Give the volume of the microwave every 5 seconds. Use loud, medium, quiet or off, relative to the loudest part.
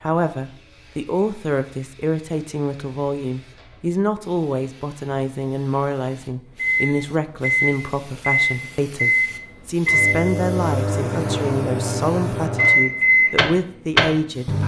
off, loud, loud.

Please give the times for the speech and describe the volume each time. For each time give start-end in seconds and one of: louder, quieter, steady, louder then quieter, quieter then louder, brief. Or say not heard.
0.0-14.6 steady.